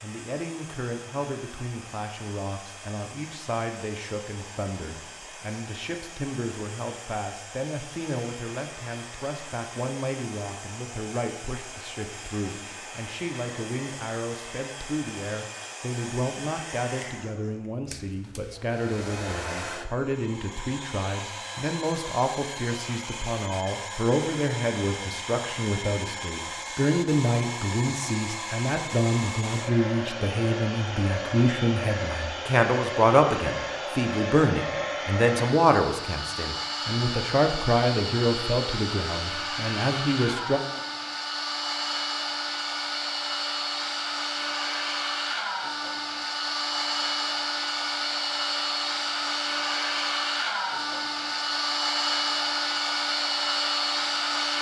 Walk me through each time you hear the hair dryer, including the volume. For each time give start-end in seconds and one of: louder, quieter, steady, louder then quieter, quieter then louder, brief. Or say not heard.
0.0-54.5 louder.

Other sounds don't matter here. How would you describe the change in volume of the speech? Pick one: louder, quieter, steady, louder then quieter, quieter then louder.
louder.